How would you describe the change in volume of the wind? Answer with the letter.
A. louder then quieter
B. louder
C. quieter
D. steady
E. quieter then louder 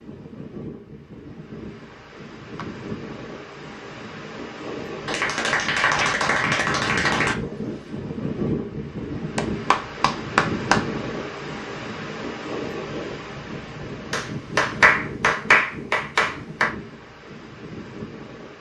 A.